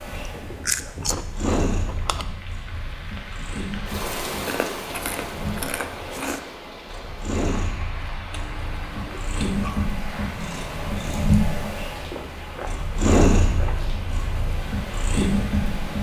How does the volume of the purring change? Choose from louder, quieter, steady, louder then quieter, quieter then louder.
louder.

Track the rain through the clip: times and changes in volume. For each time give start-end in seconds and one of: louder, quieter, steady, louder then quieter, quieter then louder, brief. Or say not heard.
0.0-15.9 louder then quieter.